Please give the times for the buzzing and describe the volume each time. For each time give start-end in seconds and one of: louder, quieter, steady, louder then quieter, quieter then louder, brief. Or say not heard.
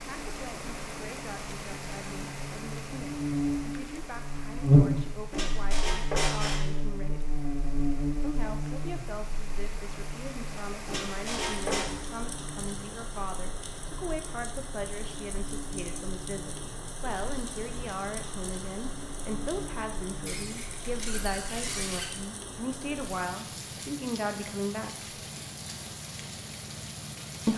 0.1-22.1 louder then quieter.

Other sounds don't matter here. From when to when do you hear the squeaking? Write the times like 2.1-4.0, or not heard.
5.3-6.7, 10.8-11.8, 20.2-22.1.